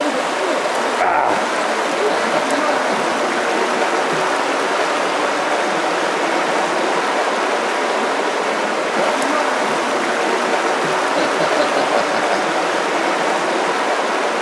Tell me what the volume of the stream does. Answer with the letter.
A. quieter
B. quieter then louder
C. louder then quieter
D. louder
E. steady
E.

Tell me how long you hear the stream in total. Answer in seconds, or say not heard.
14 s.